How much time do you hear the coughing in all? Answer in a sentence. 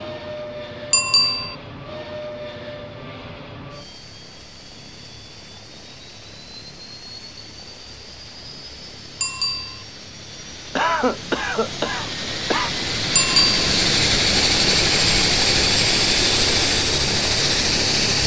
You can hear the coughing for 2 seconds altogether.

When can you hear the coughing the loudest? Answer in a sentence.
The loudest moment of the coughing is at 11 seconds.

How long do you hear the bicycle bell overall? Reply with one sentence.
You can hear the bicycle bell for 2 seconds altogether.